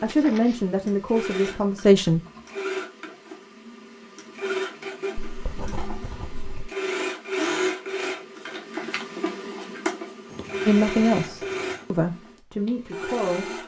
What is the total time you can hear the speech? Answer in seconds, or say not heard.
5 s.